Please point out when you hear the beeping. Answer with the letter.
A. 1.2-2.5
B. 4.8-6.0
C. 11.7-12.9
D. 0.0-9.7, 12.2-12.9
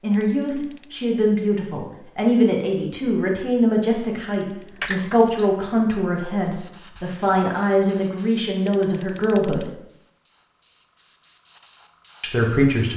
B.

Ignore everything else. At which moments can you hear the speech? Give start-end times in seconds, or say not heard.
0.0-9.7, 12.2-12.9.